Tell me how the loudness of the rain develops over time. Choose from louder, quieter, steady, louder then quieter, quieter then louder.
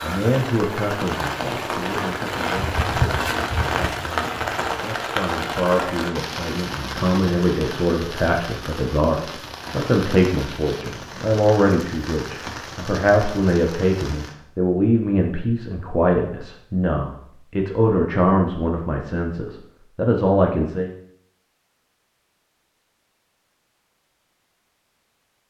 quieter.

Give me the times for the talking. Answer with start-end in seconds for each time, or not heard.
0.0-20.9.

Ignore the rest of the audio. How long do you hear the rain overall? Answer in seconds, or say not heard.
14 s.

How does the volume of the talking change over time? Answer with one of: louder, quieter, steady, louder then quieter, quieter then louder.
louder.